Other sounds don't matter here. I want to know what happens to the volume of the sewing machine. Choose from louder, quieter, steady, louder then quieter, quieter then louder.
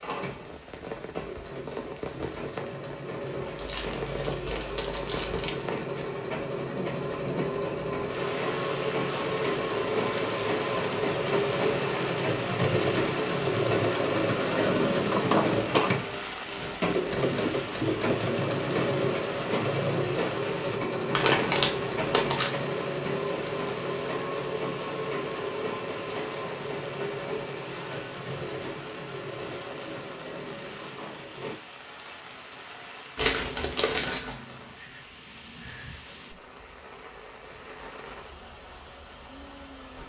louder then quieter.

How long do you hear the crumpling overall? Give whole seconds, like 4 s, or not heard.
5 s.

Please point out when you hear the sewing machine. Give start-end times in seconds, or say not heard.
0.0-31.6.